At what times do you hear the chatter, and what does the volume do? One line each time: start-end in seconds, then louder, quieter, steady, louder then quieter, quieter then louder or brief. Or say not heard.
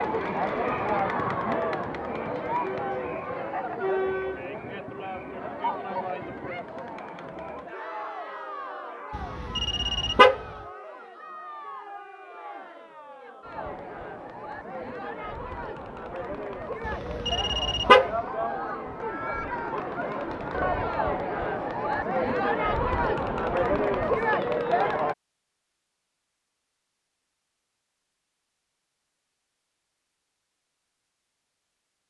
0.0-25.1 quieter then louder.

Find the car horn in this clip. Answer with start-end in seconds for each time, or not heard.
9.2-10.4, 16.9-18.1.